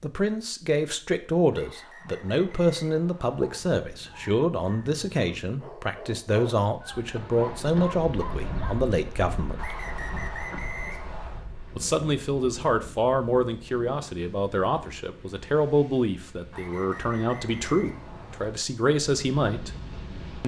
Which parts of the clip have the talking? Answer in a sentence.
The talking can be heard from 0.0 to 9.8 s and from 11.8 to 19.7 s.